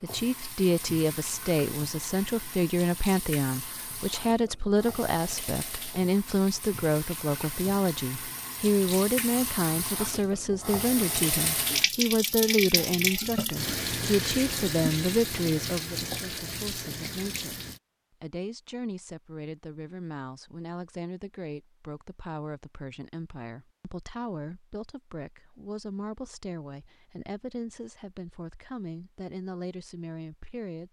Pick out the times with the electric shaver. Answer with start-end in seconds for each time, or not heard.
not heard.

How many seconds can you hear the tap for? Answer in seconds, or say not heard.
18 s.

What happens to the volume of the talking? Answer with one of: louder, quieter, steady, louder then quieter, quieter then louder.
quieter.